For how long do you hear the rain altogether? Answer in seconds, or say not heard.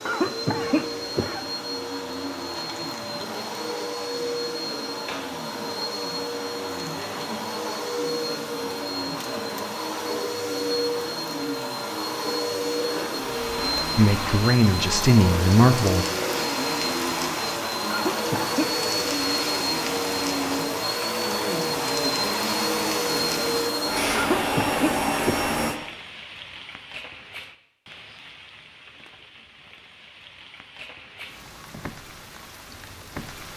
20 s.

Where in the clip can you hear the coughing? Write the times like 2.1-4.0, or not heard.
0.1-1.4, 17.9-18.8, 24.1-25.6.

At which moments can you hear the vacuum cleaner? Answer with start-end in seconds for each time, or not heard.
0.0-25.8.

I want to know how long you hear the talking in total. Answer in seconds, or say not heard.
2 s.